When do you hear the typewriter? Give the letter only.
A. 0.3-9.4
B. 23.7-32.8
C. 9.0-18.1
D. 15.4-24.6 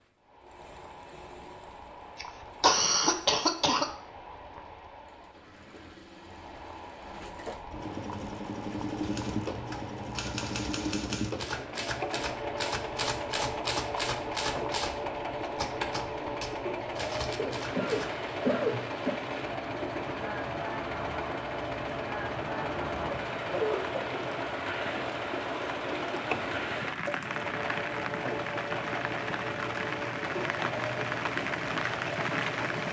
C.